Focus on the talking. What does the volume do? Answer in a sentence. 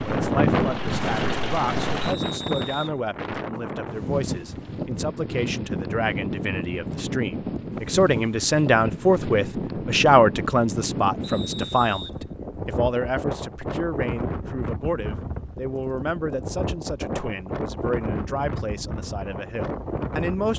The loudness of the talking goes up, then down.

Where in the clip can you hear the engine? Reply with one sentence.
You can hear the engine from 0.0 to 2.1 s.